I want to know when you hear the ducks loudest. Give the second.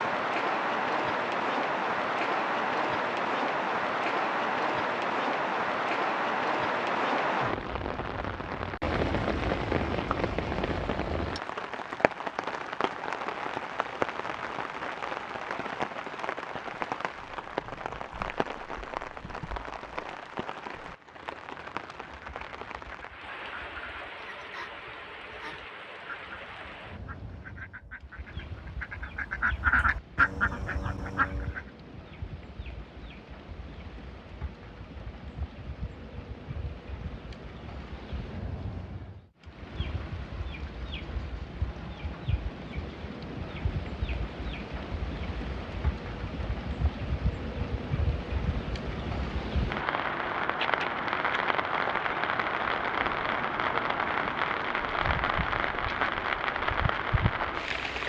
30 s.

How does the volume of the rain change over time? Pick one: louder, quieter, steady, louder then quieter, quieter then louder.
quieter then louder.